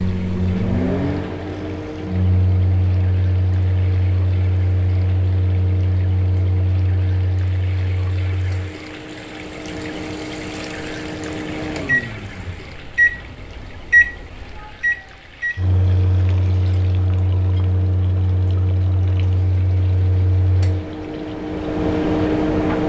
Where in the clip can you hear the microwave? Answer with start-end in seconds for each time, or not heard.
0.0-22.8.